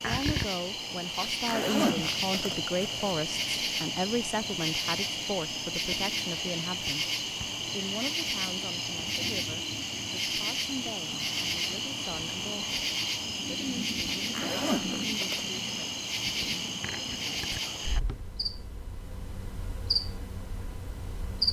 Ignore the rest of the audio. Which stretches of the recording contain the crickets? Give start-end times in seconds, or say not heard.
0.0-21.4.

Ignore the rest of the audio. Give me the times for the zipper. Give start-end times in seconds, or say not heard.
1.2-3.1, 14.1-15.5.